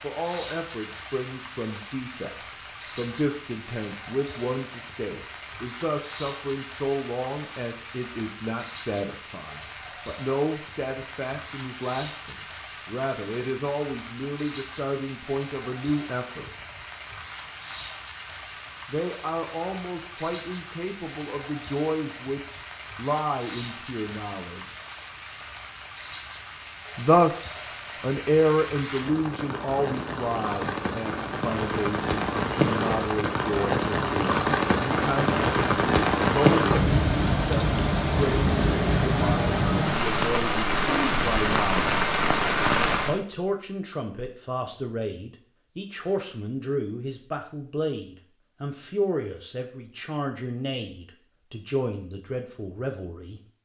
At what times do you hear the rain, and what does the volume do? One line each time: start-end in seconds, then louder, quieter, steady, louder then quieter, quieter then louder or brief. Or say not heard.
0.0-43.2 louder.